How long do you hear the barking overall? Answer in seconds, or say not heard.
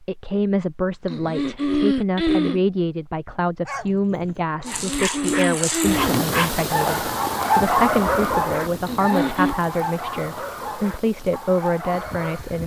9 s.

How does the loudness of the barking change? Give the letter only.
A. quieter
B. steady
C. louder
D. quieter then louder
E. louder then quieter
E.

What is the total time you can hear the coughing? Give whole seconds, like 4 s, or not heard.
4 s.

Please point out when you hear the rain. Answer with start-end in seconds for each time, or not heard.
4.7-12.6.